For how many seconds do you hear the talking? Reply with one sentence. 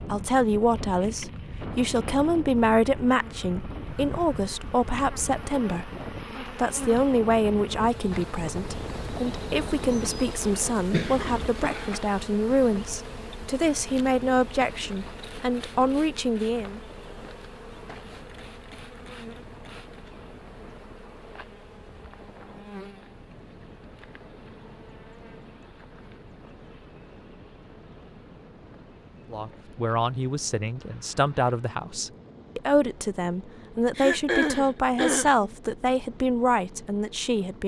The talking can be heard for 25 seconds in total.